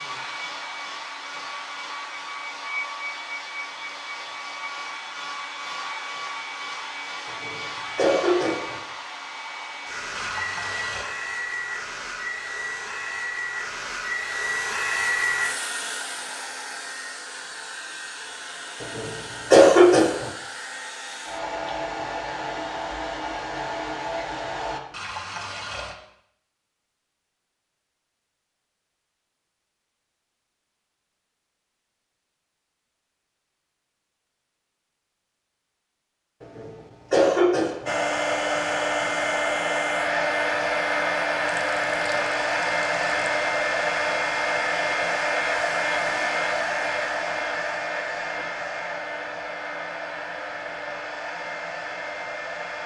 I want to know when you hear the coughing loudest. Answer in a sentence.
The volume of the coughing peaks at 20 seconds.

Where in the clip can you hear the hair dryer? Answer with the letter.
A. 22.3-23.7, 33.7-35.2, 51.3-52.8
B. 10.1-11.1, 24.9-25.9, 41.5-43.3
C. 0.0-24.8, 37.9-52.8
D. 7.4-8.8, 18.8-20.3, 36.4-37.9
C.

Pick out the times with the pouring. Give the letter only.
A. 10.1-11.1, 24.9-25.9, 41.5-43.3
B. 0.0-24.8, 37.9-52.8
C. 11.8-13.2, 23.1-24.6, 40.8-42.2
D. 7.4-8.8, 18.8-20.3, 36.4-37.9
A.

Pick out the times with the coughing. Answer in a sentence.
You can hear the coughing from 7.4 to 8.8 s, from 18.8 to 20.3 s and from 36.4 to 37.9 s.